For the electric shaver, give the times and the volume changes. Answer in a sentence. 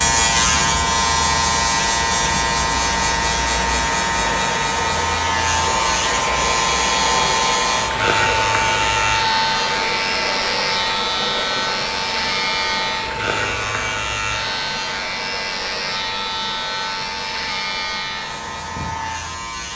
The electric shaver can be heard from 0.0 to 19.7 s, getting quieter.